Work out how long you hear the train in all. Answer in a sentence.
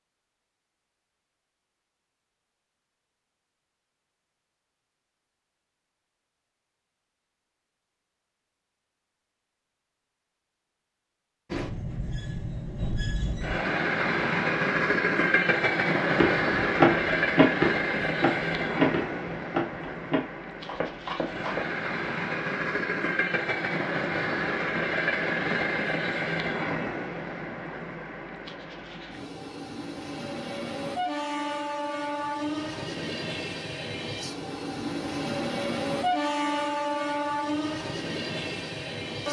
The train can be heard for 28 seconds in total.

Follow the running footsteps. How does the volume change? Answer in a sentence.
The loudness of the running footsteps goes down.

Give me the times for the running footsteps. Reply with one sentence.
You can hear the running footsteps from 16.1 to 21.6 s.